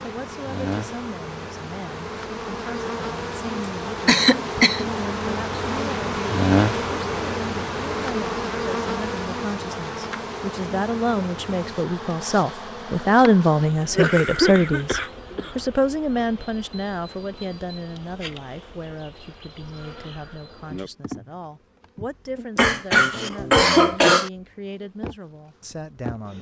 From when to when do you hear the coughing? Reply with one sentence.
The coughing can be heard from 4.0 to 4.8 s, from 13.7 to 15.6 s and from 22.6 to 24.3 s.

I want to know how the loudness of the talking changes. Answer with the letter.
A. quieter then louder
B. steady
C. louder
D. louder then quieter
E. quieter
D.